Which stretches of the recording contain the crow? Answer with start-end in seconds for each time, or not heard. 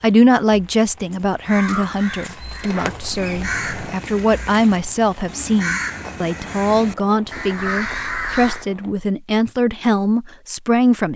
1.4-8.7.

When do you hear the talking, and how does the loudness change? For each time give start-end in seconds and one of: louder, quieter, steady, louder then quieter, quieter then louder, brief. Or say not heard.
0.0-11.1 steady.